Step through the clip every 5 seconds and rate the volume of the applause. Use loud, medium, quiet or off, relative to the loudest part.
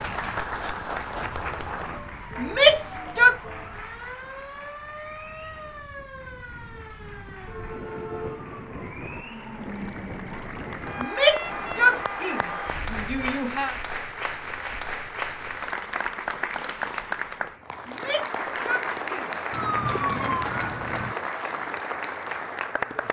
medium, quiet, loud, loud, loud.